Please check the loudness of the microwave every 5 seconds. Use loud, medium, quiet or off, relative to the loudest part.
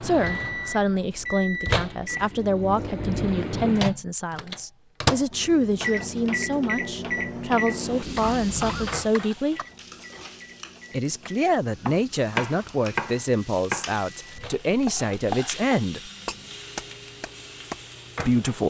loud, loud, quiet, quiet.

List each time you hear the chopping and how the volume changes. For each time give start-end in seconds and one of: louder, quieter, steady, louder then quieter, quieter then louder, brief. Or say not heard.
11.8-18.2 quieter.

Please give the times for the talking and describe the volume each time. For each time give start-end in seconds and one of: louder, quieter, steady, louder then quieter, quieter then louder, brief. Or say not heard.
0.0-9.6 steady
10.9-16.1 steady
18.1-18.6 brief.